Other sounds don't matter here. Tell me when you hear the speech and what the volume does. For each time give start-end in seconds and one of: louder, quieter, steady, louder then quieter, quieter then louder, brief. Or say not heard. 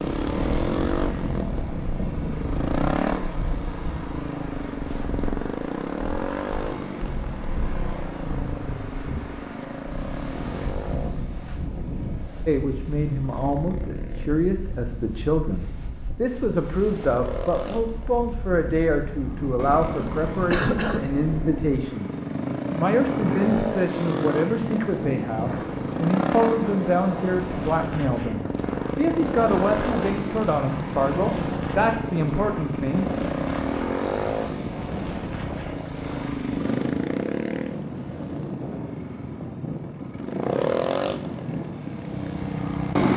12.4-33.0 steady.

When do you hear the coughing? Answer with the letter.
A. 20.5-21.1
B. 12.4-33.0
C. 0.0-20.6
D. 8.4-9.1
A.